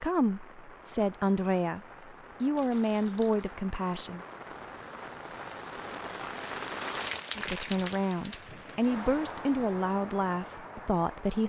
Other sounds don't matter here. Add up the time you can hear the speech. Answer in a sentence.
The speech can be heard for 8 seconds in total.